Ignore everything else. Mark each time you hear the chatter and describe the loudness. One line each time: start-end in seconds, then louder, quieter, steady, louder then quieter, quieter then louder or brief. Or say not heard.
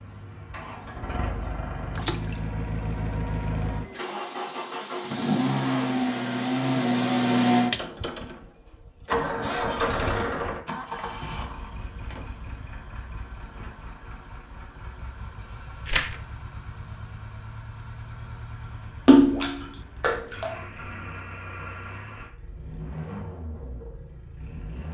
not heard.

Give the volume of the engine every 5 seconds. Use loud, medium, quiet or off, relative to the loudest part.
medium, loud, medium, quiet, quiet.